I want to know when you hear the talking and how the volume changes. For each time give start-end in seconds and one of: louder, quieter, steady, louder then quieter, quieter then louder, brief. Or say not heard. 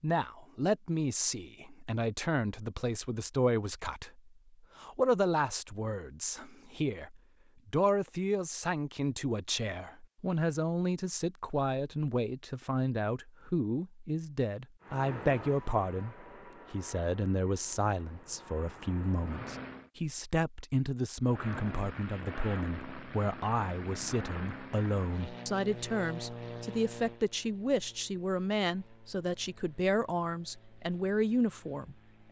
0.0-32.2 steady.